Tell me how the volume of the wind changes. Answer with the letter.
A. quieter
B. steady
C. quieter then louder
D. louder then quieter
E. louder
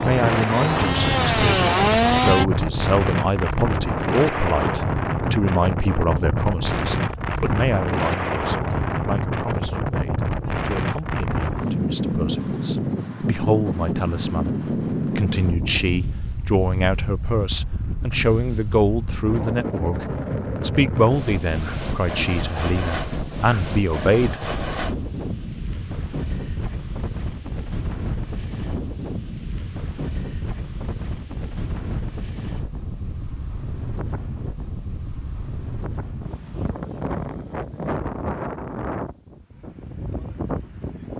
A.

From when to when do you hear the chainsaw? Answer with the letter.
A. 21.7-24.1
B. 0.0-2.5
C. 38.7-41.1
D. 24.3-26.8
B.